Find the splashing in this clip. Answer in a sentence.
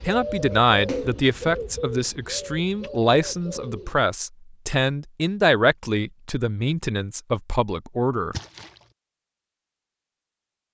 You can hear the splashing from 0.8 to 1.2 s and from 8.3 to 8.8 s.